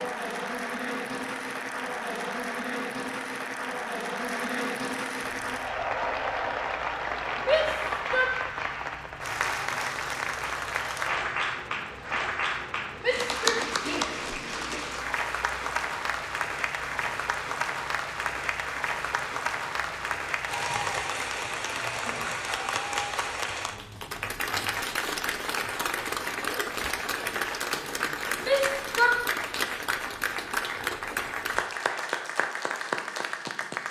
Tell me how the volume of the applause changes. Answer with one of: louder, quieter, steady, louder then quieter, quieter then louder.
steady.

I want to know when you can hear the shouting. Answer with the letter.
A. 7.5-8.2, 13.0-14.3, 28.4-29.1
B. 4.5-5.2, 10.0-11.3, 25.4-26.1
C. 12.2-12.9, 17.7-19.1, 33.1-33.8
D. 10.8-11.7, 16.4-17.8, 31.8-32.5
A.